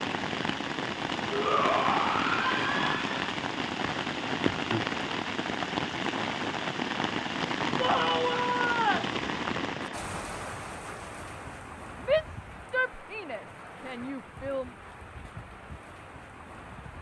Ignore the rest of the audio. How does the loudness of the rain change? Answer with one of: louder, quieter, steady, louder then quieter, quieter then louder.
quieter.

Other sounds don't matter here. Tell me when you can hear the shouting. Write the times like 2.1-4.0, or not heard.
1.3-3.2, 7.8-9.2, 12.0-14.7.